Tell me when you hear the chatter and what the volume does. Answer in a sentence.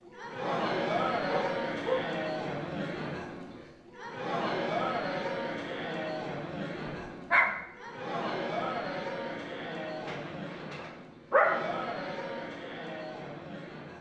You can hear the chatter from 0.1 to 13.9 s, getting quieter.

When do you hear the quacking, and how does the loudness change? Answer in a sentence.
You can't hear the quacking here.